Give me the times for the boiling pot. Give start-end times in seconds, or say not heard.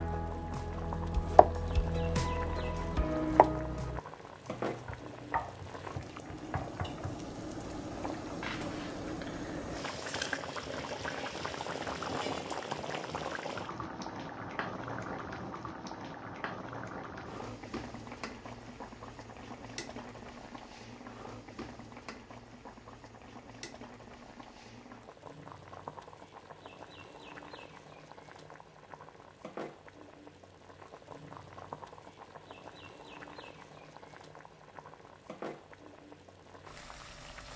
0.0-37.5.